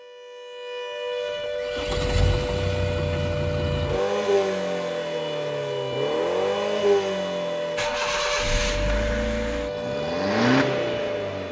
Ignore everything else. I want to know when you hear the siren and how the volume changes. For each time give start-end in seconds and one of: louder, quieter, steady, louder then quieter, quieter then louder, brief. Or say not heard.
0.0-11.4 steady.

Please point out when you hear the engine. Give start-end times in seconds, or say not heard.
1.6-11.4.